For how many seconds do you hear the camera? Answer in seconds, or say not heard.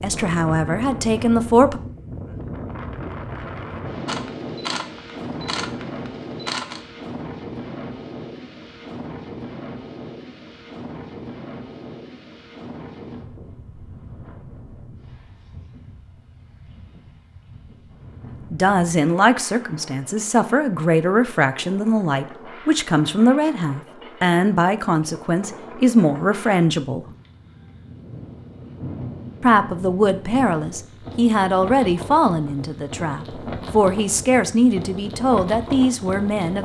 3 s.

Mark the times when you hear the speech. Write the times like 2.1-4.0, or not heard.
0.0-1.8, 18.5-27.1, 29.4-36.5.